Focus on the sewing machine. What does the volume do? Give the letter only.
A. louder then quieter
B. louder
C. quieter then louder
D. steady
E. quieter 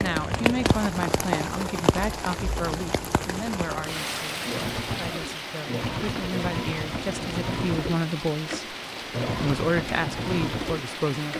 B.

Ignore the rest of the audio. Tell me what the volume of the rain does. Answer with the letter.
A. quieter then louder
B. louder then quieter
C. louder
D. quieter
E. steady
D.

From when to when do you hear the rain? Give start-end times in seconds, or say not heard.
0.0-11.3.